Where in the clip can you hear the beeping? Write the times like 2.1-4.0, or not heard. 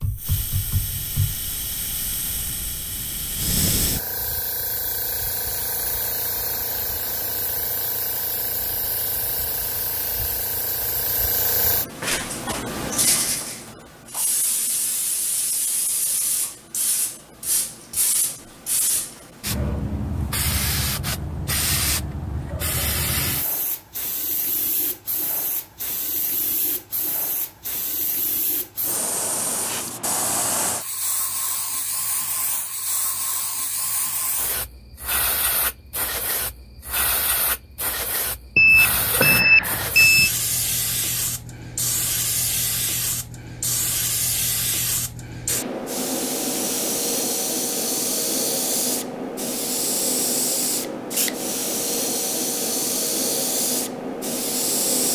38.5-40.3.